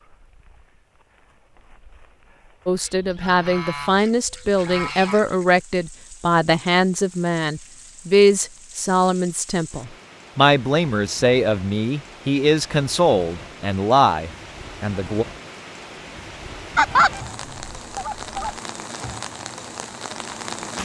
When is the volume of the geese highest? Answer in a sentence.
The volume of the geese peaks at 17 seconds.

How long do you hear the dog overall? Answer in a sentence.
You can't hear the dog here.